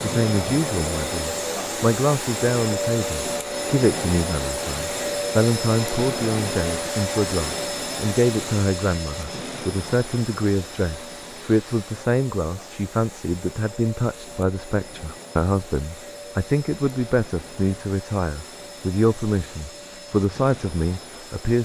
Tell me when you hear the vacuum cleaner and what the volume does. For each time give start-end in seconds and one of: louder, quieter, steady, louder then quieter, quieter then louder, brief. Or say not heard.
0.0-21.5 quieter.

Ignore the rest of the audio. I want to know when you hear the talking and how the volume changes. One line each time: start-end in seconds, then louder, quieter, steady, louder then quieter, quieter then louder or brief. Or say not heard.
0.0-21.5 steady.